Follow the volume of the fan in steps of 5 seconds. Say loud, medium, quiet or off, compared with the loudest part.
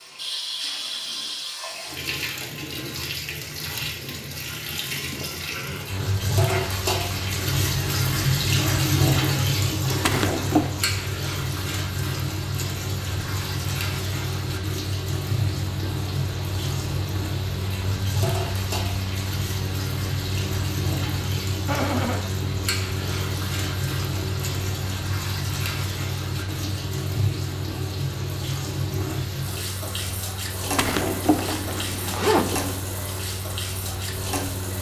off, loud, loud, loud, loud, loud, loud.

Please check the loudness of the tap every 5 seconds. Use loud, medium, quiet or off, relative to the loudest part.
medium, loud, medium, medium, medium, medium, medium.